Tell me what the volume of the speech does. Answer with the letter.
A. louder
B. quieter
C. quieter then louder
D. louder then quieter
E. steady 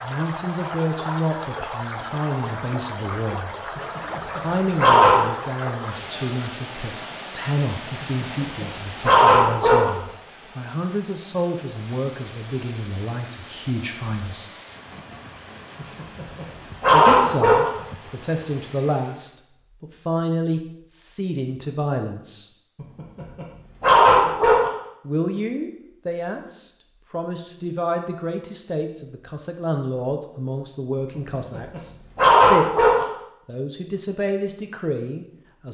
E.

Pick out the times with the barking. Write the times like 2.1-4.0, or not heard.
3.8-5.3, 8.0-9.9, 15.8-17.7, 22.8-24.7, 31.1-33.0.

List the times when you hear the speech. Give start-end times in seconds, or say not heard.
0.0-3.5, 4.3-14.4, 16.9-22.4, 25.1-35.6.